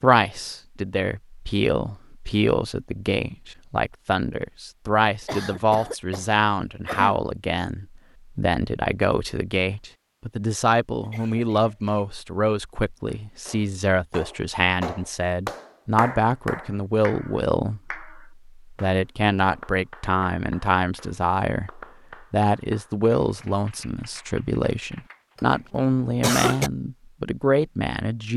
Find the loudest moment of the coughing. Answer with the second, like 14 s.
26 s.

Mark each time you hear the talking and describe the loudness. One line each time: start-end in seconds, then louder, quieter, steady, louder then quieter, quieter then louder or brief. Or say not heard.
0.0-28.3 steady.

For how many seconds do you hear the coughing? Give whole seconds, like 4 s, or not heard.
4 s.